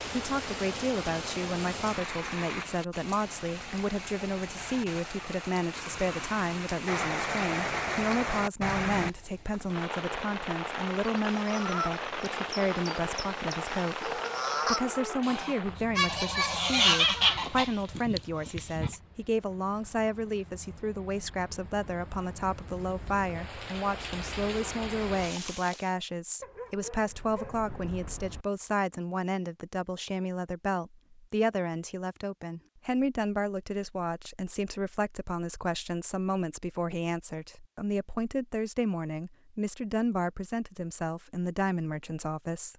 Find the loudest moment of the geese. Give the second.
17 s.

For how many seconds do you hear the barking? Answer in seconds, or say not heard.
3 s.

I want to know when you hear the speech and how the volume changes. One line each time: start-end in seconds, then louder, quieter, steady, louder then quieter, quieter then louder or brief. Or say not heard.
0.1-42.7 steady.